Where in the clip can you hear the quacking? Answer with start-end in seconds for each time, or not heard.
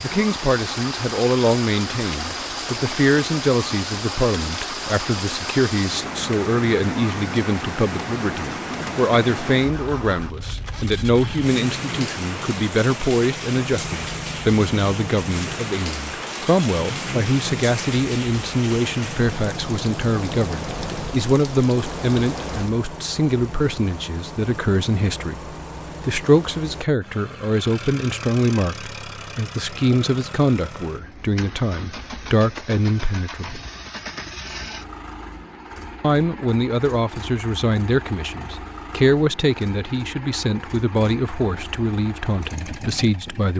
not heard.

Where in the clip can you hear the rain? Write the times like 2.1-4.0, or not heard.
0.0-22.7.